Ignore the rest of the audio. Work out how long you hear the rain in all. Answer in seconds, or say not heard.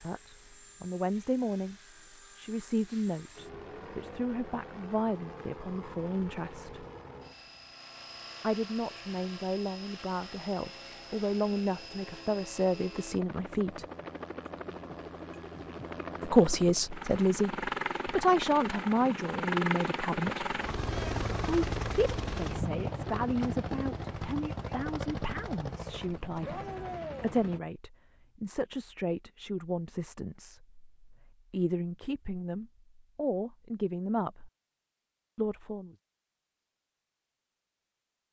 not heard.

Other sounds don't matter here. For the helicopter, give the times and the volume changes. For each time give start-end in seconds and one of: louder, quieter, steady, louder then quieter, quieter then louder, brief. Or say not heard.
0.0-27.6 louder.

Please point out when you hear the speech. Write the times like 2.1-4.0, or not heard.
0.0-1.8, 2.4-6.8, 8.4-13.8, 16.2-20.4, 21.4-34.5, 35.4-36.0.